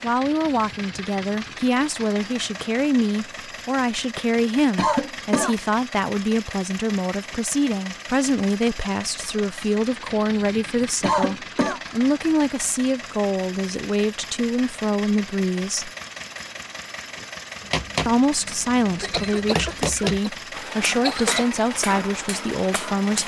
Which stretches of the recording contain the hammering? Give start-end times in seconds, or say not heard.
17.6-23.2.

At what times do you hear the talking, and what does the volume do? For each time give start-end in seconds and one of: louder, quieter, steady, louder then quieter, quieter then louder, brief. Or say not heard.
0.0-15.9 steady
18.1-23.2 steady.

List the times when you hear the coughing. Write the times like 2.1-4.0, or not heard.
4.8-5.5, 11.0-11.8, 19.0-21.6.